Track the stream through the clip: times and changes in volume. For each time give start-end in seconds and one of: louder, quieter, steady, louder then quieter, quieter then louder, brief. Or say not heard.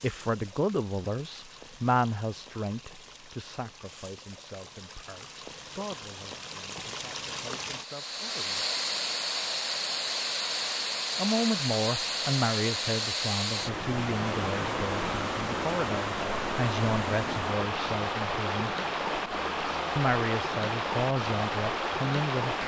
0.0-22.6 louder.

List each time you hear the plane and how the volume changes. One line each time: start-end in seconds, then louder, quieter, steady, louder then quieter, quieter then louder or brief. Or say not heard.
not heard.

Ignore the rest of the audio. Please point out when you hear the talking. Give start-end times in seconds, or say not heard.
0.0-8.7, 11.2-18.7, 19.9-22.6.